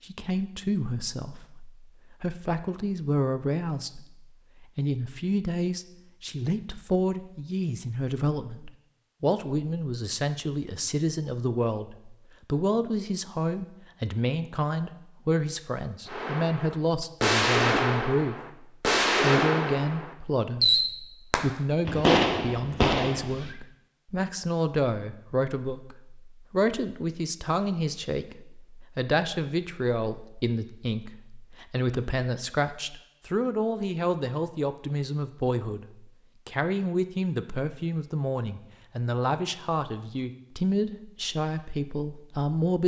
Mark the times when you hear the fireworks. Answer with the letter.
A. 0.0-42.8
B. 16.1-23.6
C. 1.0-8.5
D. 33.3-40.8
B.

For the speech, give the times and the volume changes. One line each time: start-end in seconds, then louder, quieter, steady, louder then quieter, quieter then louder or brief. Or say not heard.
0.0-42.8 steady.